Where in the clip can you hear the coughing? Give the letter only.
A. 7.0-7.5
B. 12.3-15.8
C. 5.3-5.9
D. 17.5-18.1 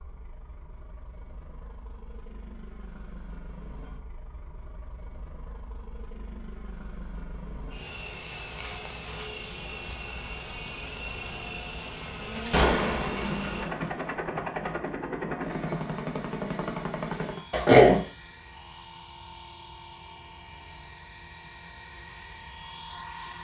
D.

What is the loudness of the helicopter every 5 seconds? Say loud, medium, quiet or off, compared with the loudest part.
quiet, medium, loud, loud, loud.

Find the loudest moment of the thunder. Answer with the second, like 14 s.
13 s.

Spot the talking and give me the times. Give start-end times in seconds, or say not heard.
not heard.